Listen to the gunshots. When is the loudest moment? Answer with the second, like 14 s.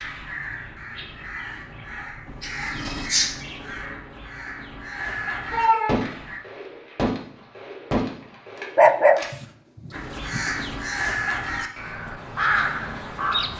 6 s.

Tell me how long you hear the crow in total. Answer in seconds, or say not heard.
10 s.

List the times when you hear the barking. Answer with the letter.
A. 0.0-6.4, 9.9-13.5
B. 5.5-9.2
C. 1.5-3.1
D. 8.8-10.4
D.